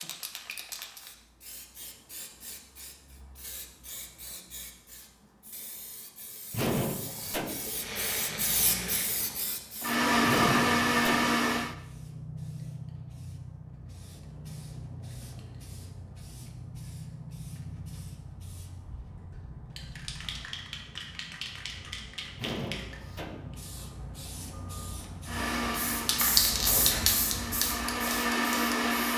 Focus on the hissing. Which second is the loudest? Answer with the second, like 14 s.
27 s.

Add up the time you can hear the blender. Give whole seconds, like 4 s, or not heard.
8 s.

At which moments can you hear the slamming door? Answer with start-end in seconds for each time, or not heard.
6.5-7.8, 10.2-11.3, 22.4-23.6.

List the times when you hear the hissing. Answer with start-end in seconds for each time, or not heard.
0.0-29.1.